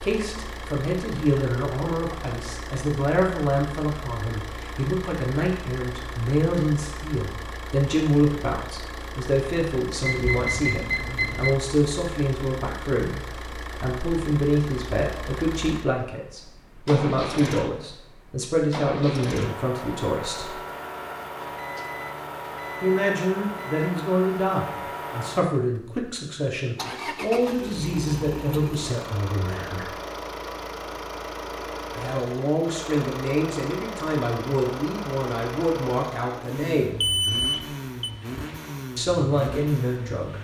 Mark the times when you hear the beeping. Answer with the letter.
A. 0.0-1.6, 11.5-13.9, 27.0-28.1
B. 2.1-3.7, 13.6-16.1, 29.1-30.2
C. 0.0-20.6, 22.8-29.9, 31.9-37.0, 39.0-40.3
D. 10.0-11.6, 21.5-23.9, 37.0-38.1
D.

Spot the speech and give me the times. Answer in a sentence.
You can hear the speech from 0.0 to 20.6 s, from 22.8 to 29.9 s, from 31.9 to 37.0 s and from 39.0 to 40.3 s.